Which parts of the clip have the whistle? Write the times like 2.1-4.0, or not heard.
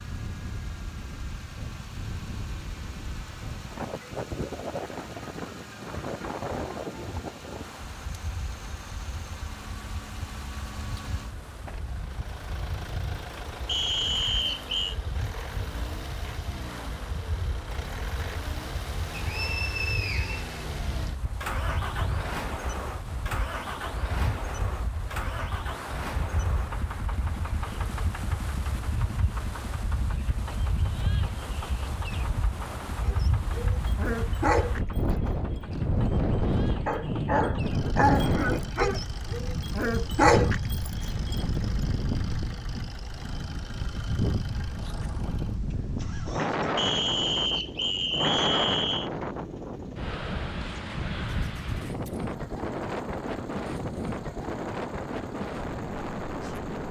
13.7-14.9, 19.1-21.1, 46.8-49.1.